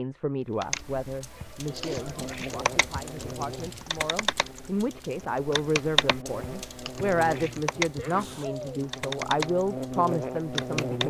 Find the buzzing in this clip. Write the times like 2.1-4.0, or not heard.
1.6-11.0.